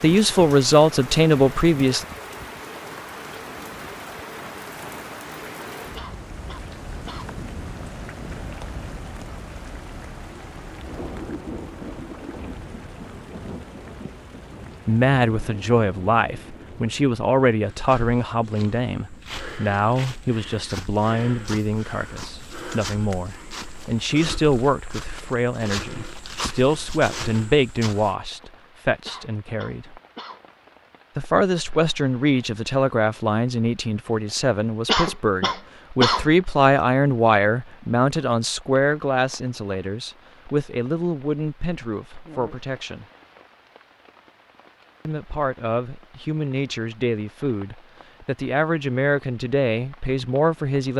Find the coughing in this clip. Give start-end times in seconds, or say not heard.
6.0-7.3, 29.1-30.4, 34.9-36.2.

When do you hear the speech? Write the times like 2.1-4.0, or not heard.
0.0-2.0, 14.8-30.0, 31.1-43.0, 45.0-50.9.